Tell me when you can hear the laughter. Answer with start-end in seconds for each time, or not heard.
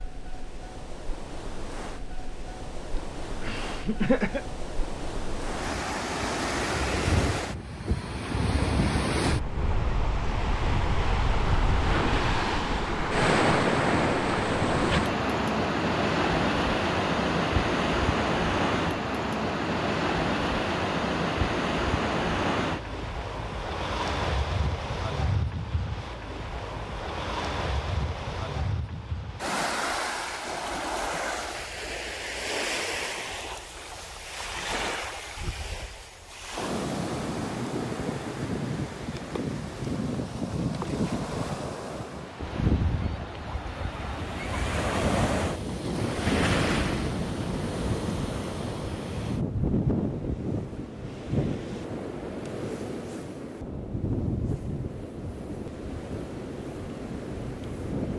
3.0-4.5.